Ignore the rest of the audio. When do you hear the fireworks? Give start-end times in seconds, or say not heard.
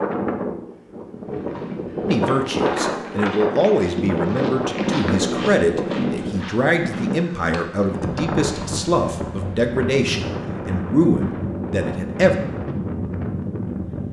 not heard.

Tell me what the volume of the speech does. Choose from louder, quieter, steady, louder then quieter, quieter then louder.
steady.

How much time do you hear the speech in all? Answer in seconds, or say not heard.
10 s.